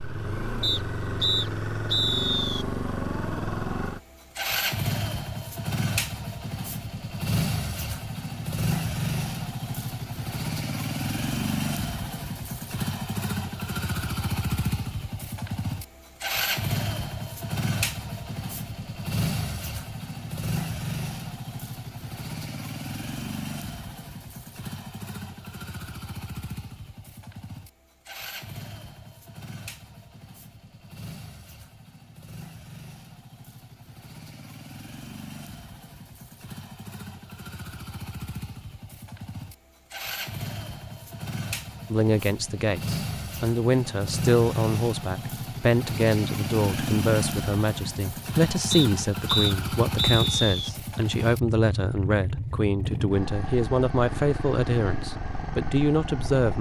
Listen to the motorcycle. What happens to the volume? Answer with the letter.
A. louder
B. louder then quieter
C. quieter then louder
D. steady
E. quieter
C.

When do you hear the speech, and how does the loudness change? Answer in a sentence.
The speech can be heard from 41.9 to 56.5 s, at a steady volume.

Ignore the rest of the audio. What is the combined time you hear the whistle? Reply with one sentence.
You can hear the whistle for 4 seconds altogether.